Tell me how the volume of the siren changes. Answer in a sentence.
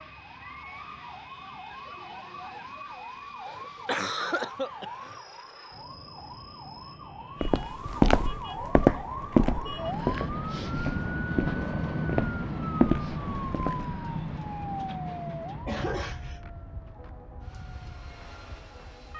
The volume of the siren goes up, then down.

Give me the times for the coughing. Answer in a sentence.
The coughing can be heard from 3.5 to 5.2 s and from 15.7 to 16.4 s.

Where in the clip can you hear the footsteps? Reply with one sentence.
You can hear the footsteps from 7.4 to 13.8 s.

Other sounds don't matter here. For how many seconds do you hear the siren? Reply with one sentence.
You can hear the siren for 19 seconds altogether.